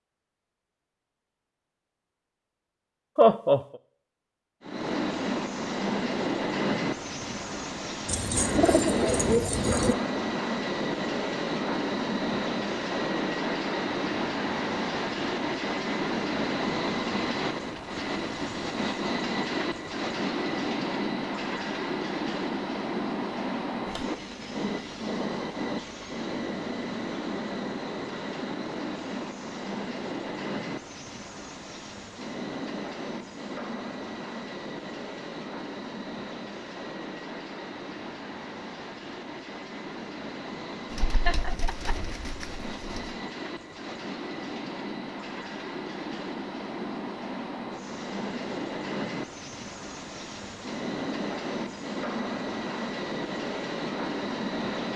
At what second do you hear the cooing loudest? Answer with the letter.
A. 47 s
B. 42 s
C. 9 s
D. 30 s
C.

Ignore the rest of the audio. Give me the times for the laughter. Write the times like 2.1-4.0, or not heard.
3.1-3.6, 41.2-42.0.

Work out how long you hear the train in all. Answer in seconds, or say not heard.
50 s.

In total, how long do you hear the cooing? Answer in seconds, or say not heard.
4 s.